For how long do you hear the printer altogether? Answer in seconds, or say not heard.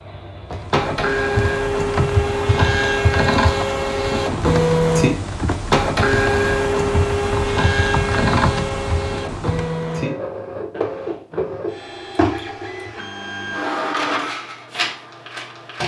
16 s.